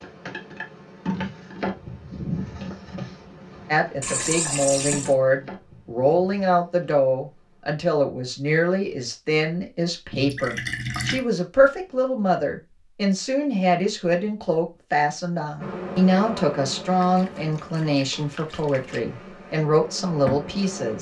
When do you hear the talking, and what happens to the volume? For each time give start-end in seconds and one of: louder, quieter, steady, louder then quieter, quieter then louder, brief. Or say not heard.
3.6-20.9 steady.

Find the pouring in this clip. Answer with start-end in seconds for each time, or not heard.
4.0-5.2, 10.1-11.2, 17.0-19.0.